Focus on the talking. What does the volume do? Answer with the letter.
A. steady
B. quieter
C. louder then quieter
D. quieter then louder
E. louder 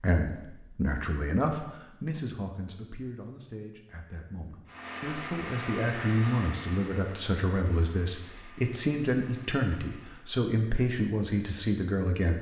D.